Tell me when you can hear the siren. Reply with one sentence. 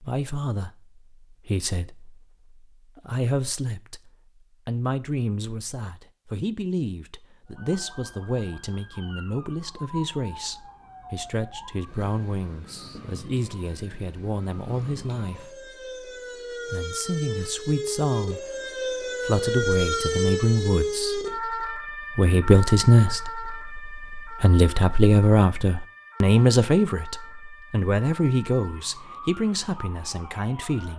The siren can be heard from 7.5 to 30.9 s.